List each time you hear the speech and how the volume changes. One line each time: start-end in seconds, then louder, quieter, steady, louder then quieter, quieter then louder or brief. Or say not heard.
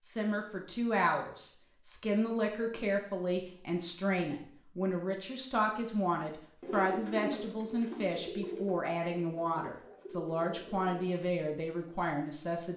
0.0-12.7 steady.